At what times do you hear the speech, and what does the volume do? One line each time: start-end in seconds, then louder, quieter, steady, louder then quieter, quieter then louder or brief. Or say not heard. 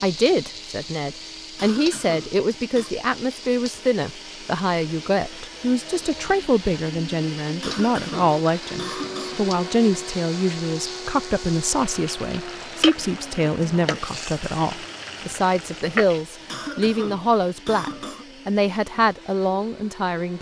0.0-20.3 steady.